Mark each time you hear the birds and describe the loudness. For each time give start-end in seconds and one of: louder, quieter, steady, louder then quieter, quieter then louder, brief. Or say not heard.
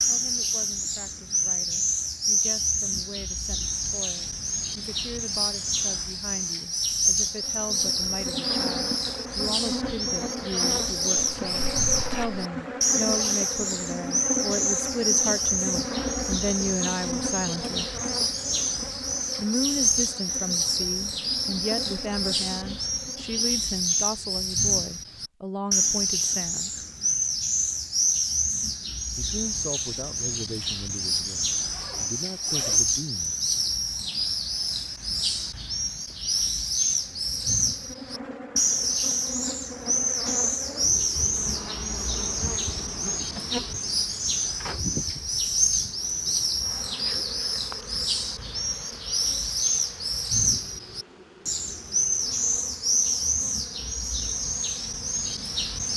0.0-55.9 steady.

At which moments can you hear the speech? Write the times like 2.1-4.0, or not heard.
0.0-17.9, 19.4-26.8, 29.1-33.4.